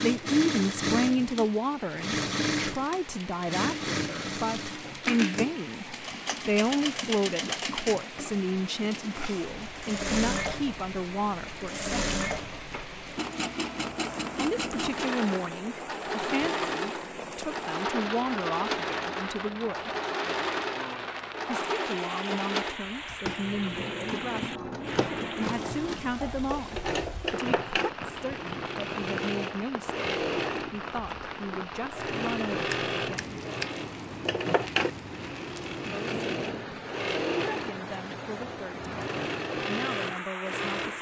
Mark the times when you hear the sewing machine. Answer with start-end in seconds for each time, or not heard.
0.0-40.9.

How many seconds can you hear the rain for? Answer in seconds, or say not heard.
41 s.